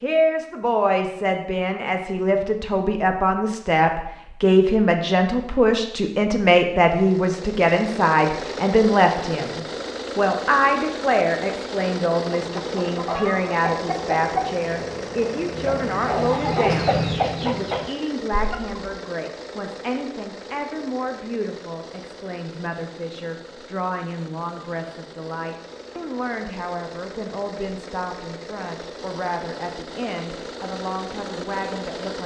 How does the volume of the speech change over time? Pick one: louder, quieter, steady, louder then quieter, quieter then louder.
quieter.